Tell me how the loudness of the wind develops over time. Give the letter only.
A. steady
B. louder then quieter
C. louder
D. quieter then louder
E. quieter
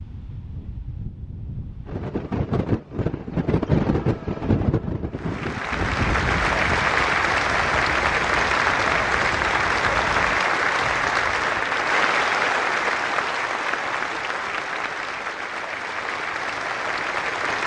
B.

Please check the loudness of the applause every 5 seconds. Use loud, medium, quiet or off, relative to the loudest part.
off, loud, loud, medium.